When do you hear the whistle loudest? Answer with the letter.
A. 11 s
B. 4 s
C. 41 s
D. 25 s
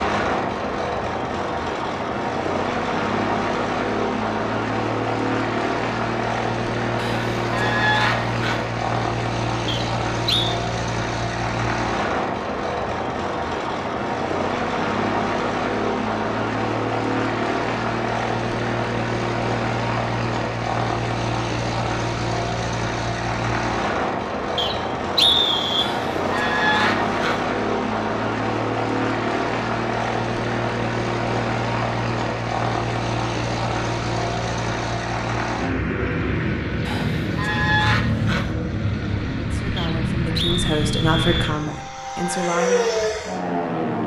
D.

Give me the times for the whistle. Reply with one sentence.
You can hear the whistle from 9.7 to 10.6 s, from 24.6 to 25.9 s and from 39.8 to 41.5 s.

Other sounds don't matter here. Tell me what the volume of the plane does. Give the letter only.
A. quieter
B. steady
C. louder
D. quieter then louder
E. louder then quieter
B.